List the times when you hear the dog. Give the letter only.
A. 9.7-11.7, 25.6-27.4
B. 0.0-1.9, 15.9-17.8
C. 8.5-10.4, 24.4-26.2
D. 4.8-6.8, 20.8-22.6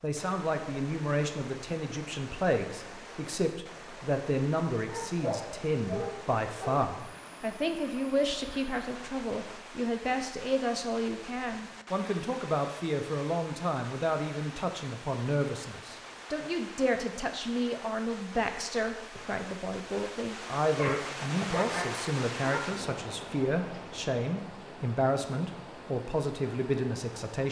D.